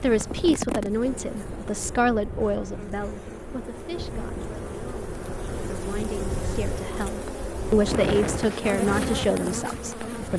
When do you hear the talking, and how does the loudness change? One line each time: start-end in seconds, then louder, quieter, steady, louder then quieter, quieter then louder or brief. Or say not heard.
0.0-10.3 quieter then louder.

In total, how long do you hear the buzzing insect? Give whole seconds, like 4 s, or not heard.
10 s.